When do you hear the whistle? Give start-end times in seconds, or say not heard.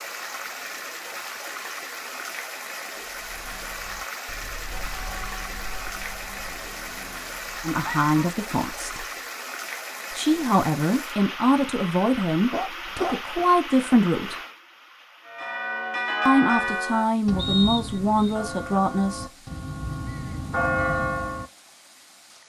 17.4-18.4.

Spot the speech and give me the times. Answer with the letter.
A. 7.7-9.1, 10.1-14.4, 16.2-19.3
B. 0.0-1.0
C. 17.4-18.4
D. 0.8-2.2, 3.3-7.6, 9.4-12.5
A.